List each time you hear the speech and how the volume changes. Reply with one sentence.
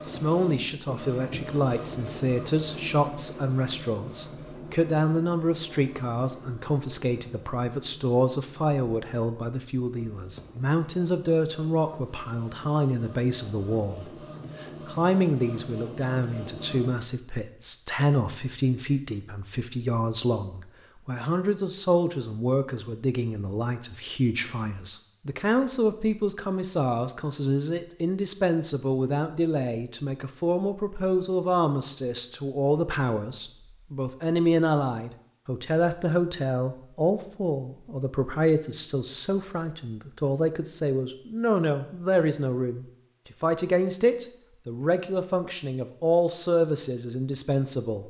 You can hear the speech from 0.0 to 48.0 s, at a steady volume.